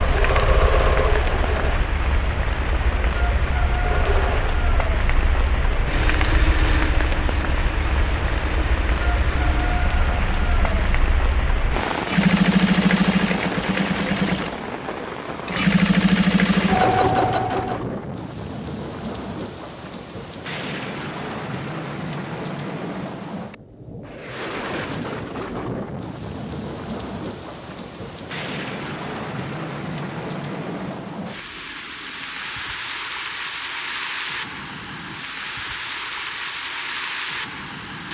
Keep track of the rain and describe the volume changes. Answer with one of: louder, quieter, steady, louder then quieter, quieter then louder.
steady.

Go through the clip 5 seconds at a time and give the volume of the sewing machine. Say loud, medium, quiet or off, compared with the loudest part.
medium, quiet, loud, loud, off, off, off, off.